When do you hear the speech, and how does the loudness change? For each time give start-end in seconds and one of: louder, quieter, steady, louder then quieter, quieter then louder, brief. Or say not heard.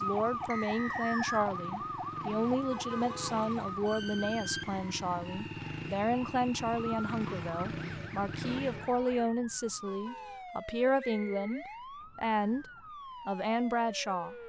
0.0-12.7 steady
13.2-14.3 brief.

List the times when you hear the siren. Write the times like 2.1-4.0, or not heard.
0.0-14.4.